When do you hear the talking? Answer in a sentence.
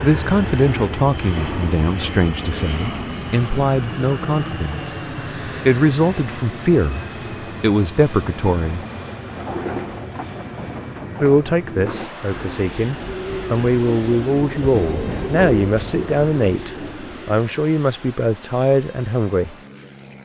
The talking can be heard from 0.0 to 8.8 s and from 11.2 to 19.6 s.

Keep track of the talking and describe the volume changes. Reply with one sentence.
The loudness of the talking stays about the same.